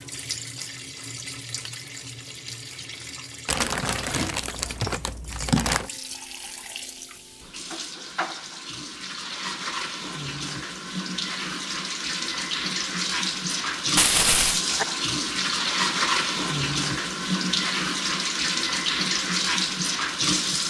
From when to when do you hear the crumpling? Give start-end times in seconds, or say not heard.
3.5-5.9, 13.9-14.6.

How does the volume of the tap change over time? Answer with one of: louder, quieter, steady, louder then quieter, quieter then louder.
louder.